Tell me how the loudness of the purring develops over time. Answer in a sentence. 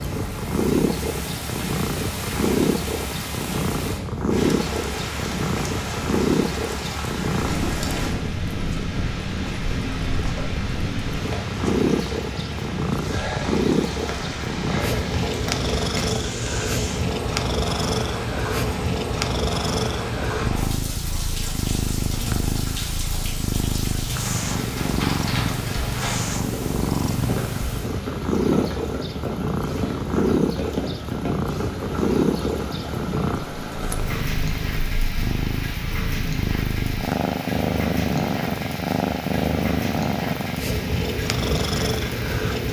The loudness of the purring stays about the same.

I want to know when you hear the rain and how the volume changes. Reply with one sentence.
You can hear the rain from 0.0 to 42.6 s, at a steady volume.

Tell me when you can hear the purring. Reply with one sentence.
You can hear the purring from 0.0 to 42.6 s.